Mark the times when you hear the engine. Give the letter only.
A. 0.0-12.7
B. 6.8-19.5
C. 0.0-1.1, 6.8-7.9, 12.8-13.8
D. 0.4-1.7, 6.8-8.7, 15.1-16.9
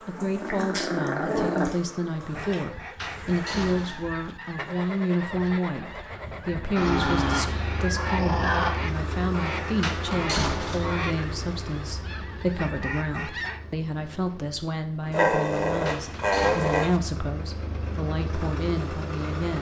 B.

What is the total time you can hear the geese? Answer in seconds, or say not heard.
11 s.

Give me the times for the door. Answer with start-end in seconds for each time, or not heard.
3.0-4.1, 9.8-10.9, 15.8-16.8.